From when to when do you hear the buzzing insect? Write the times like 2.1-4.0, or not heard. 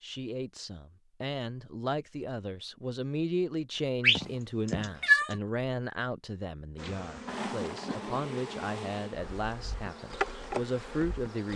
6.8-11.5.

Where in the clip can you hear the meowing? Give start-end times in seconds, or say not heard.
4.0-5.3.